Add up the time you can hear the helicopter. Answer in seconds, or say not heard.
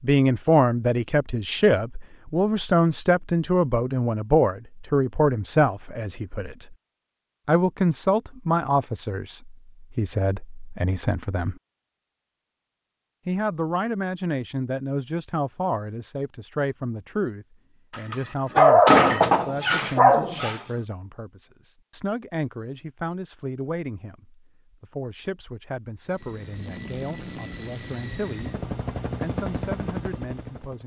5 s.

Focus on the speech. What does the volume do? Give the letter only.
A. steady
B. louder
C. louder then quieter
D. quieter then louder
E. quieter
E.